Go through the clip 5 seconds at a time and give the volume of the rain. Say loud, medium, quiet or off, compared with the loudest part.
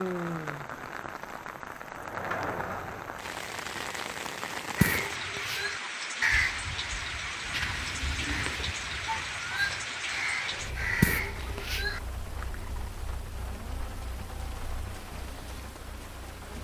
loud, loud, medium, medium.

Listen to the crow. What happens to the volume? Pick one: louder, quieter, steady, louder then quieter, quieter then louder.
quieter then louder.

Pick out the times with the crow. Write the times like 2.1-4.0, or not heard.
4.8-12.0.